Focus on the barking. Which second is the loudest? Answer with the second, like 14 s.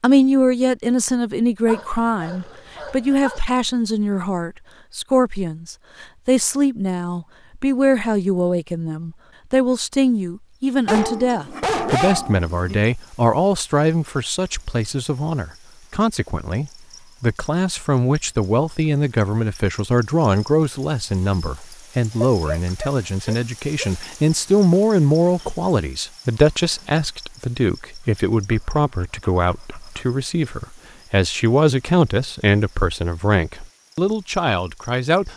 12 s.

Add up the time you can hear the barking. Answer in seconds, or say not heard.
7 s.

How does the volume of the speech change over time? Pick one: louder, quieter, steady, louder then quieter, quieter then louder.
steady.